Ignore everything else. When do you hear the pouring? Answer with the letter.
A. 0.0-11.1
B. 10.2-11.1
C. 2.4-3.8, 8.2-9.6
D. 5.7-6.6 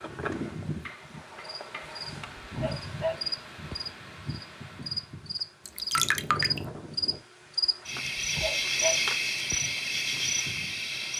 D.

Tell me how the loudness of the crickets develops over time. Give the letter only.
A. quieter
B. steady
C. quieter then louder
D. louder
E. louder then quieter
D.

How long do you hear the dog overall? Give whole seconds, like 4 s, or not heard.
3 s.